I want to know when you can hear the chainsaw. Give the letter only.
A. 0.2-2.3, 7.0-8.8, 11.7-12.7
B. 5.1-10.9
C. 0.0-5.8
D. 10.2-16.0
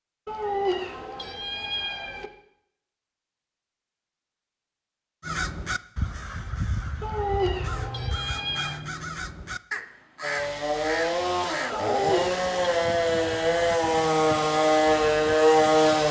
D.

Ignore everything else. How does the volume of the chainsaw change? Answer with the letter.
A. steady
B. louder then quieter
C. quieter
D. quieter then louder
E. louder
E.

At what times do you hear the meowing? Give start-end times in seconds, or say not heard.
0.2-2.3, 7.0-8.8, 11.7-12.7.